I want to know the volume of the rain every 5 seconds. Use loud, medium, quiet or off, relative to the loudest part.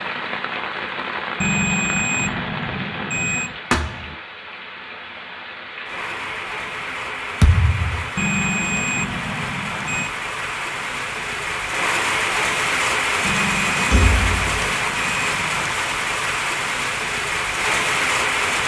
medium, medium, loud, loud.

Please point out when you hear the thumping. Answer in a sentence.
You can hear the thumping from 3.7 to 4.2 s, from 7.4 to 8.1 s and from 13.9 to 14.4 s.